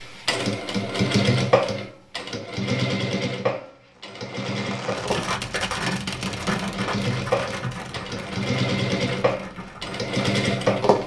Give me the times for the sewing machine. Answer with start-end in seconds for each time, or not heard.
0.0-11.0.